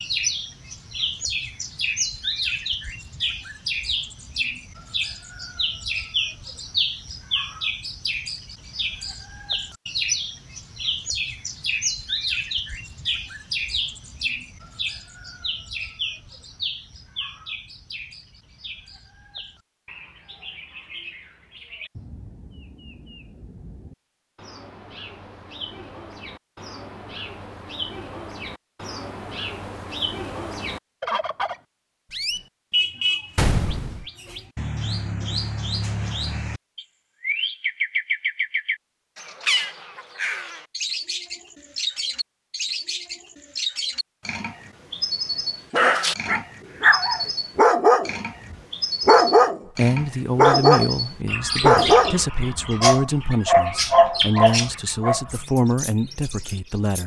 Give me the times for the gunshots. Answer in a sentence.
You can hear the gunshots from 33.4 to 34.0 s.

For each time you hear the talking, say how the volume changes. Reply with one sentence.
You can hear the talking from 49.8 to 57.0 s, at a steady volume.